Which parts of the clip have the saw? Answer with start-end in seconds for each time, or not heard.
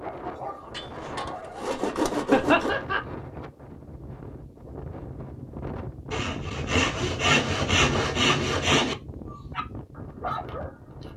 0.8-2.8, 6.1-8.9.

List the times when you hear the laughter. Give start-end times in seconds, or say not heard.
2.3-3.0.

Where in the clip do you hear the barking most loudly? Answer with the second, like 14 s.
10 s.